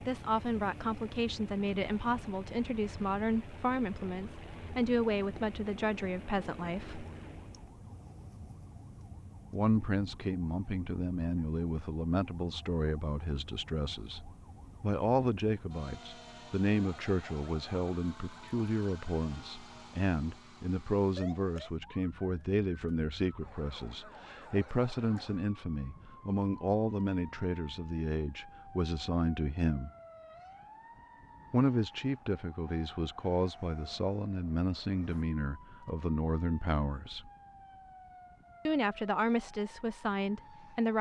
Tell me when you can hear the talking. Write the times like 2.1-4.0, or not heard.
0.1-7.0, 9.5-29.9, 31.5-37.3, 38.6-40.9.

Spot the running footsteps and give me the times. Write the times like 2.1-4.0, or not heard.
not heard.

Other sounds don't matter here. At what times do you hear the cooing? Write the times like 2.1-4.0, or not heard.
not heard.